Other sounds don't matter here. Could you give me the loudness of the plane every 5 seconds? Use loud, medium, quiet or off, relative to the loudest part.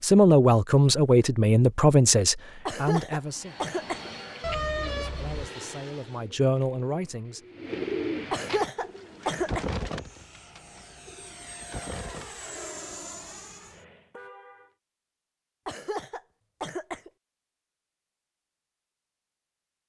loud, loud, loud, off.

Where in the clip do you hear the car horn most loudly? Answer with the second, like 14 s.
5 s.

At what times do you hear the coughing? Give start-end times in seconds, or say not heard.
2.6-4.1, 8.3-9.7, 15.7-17.1.